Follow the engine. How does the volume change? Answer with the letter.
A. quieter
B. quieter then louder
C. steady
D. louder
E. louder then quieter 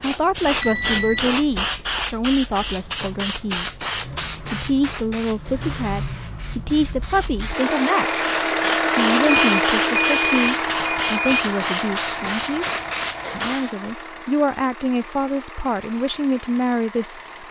E.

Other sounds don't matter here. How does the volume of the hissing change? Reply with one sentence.
The loudness of the hissing goes down, then up.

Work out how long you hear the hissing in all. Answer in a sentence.
The hissing can be heard for 14 seconds in total.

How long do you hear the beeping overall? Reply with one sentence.
You can hear the beeping for 3 seconds altogether.